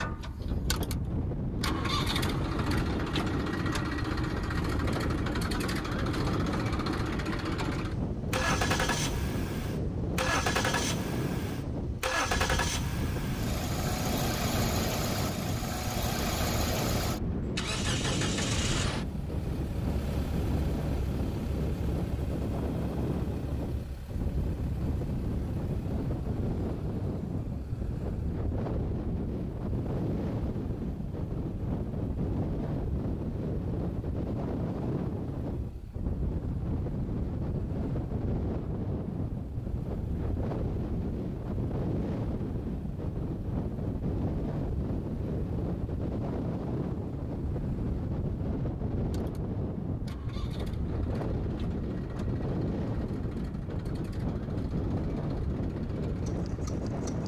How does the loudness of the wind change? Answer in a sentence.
The volume of the wind stays about the same.